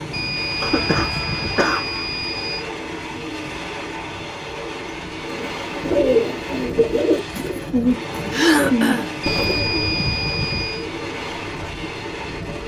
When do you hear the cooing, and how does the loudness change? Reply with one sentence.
The cooing can be heard from 5.2 to 12.6 s, getting quieter.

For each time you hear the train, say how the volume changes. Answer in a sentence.
You can hear the train from 0.0 to 12.6 s, at a steady volume.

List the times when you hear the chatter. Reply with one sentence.
The chatter can't be heard in this clip.